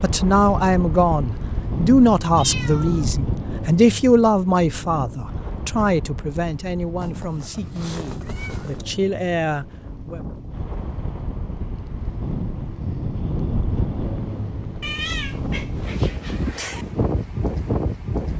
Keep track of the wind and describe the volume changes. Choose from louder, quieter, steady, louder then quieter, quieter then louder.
quieter then louder.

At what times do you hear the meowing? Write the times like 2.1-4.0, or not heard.
2.4-3.2, 7.0-8.8, 14.8-16.9.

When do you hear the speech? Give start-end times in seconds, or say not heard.
0.0-10.2.